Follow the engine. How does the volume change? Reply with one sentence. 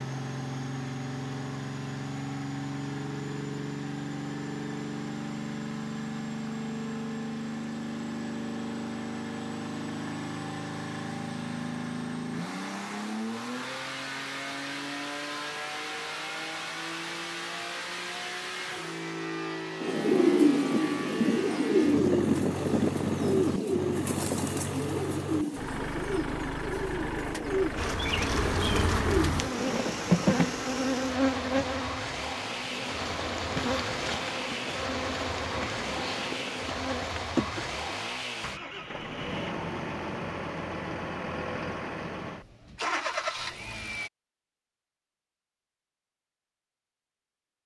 The loudness of the engine stays about the same.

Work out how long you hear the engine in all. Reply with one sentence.
You can hear the engine for 44 seconds altogether.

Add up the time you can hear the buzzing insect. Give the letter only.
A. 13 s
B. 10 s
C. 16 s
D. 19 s
B.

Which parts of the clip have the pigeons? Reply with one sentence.
The pigeons can be heard from 19.8 to 29.8 s.